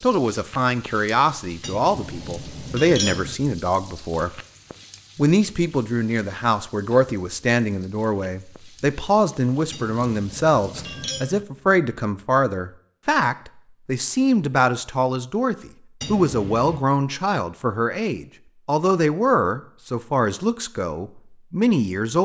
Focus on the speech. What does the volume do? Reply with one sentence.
The volume of the speech stays about the same.